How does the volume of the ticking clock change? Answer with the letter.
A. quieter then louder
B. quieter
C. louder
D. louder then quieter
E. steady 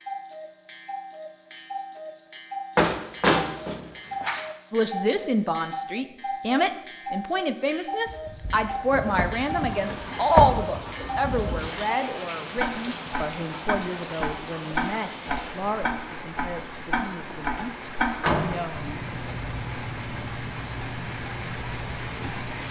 D.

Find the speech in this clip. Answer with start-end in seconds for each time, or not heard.
4.7-19.0.